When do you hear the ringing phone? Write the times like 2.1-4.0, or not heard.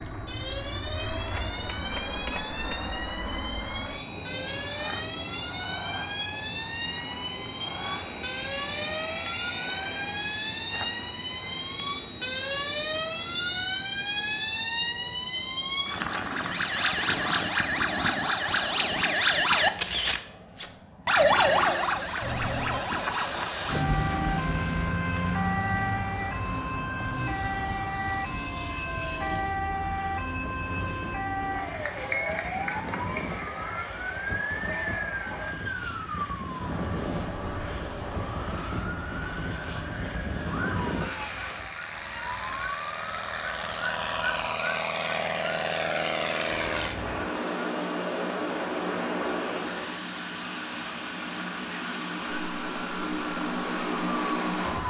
1.2-2.8, 22.2-22.9, 43.9-44.6.